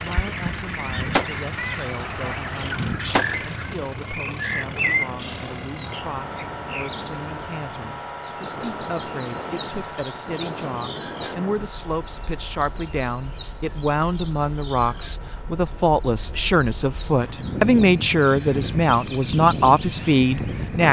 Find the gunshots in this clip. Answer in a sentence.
The gunshots can be heard from 0.4 to 3.4 s.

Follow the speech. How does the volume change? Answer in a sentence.
The volume of the speech goes up.